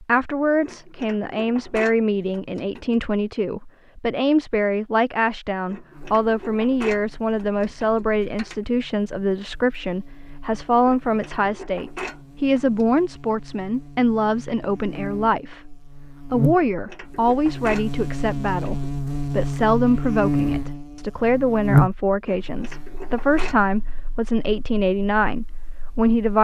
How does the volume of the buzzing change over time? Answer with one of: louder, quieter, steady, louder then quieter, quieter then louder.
louder then quieter.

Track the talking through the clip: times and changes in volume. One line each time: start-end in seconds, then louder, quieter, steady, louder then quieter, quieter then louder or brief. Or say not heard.
0.0-26.3 steady.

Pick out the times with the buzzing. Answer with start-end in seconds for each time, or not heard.
5.9-26.3.